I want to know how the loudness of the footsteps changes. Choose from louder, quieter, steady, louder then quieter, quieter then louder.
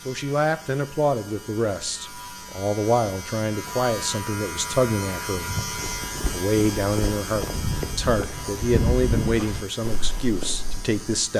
louder then quieter.